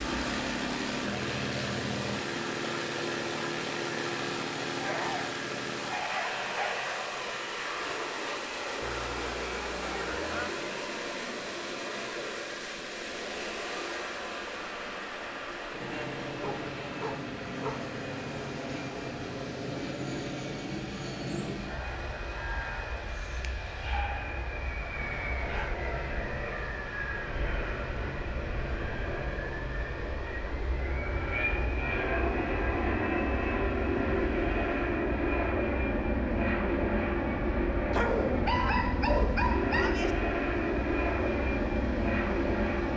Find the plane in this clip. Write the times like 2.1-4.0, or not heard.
0.0-42.9.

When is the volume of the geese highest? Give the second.
10 s.